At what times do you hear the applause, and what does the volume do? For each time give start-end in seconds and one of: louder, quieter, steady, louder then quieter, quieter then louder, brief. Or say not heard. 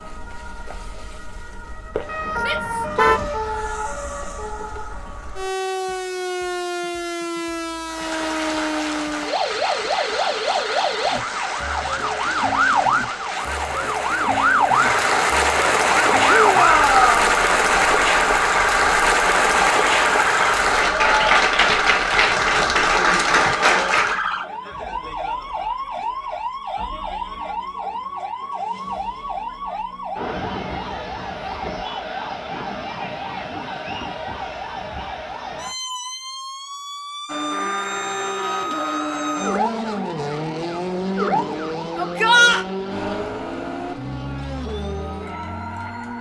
7.8-24.2 louder.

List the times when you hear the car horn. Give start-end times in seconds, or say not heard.
1.9-3.2.